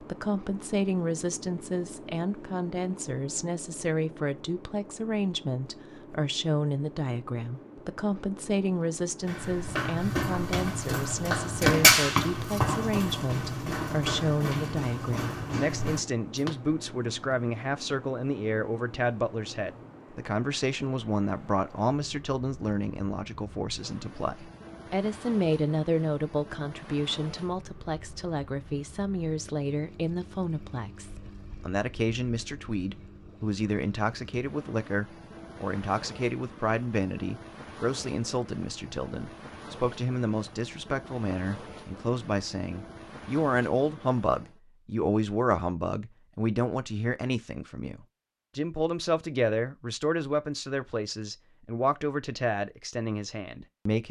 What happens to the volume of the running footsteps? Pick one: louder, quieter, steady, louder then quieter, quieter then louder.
louder then quieter.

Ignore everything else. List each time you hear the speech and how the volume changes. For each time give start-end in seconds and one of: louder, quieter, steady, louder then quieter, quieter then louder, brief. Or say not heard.
0.0-54.0 steady.